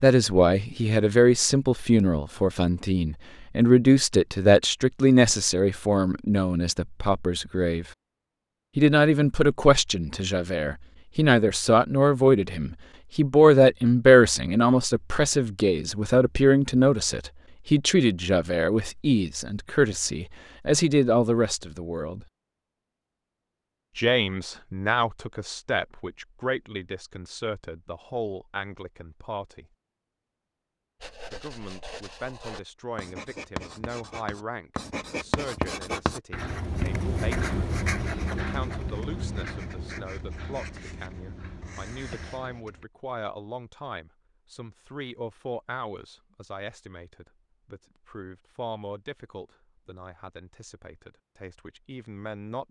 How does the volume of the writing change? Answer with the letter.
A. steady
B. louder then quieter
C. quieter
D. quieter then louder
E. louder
B.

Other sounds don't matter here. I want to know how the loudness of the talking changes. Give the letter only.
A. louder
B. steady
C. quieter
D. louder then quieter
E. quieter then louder
C.